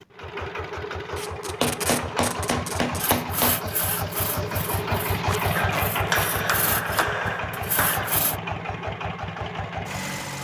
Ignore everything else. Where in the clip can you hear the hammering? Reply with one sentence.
You can hear the hammering from 1.6 to 3.6 s and from 5.5 to 8.2 s.